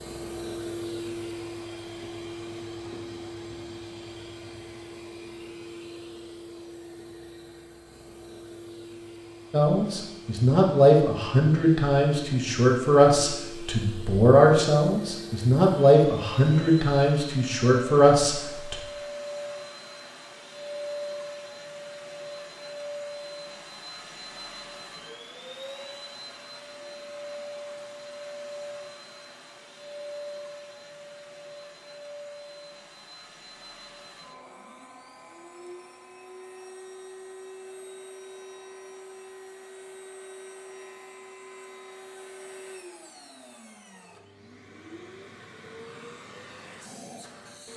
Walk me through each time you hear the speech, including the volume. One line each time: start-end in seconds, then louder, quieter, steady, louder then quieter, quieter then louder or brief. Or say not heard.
9.5-18.8 steady.